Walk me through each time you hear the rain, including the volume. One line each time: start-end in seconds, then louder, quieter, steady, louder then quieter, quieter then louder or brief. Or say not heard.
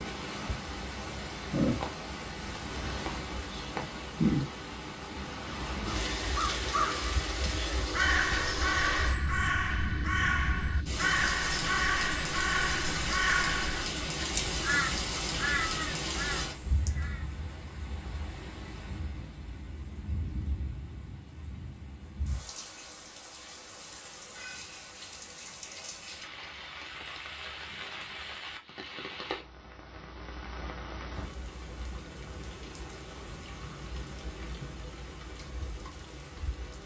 0.0-36.8 quieter.